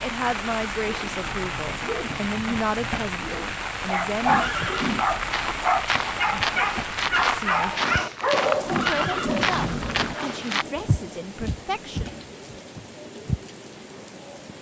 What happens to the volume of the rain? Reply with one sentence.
The volume of the rain goes down.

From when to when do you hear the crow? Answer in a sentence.
The crow can't be heard in this clip.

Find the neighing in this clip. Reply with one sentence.
You can hear the neighing from 4.2 to 5.0 s and from 8.7 to 10.2 s.